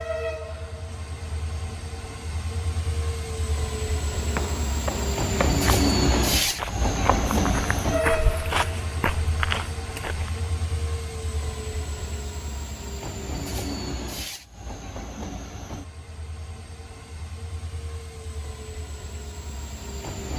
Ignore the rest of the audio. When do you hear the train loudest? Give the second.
6 s.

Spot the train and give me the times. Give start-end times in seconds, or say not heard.
0.0-20.3.